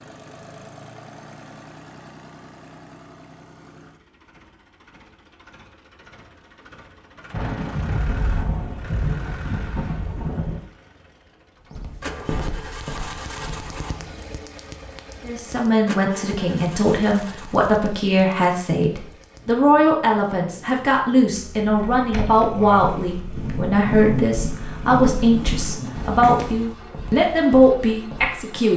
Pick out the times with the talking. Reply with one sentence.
The talking can be heard from 15.2 to 28.7 s.